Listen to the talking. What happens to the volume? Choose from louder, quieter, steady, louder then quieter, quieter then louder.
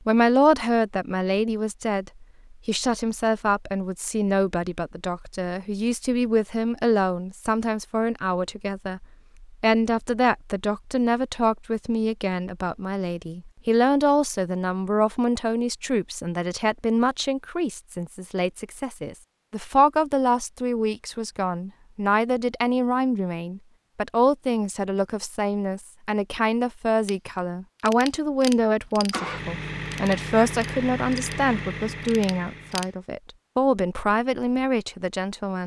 steady.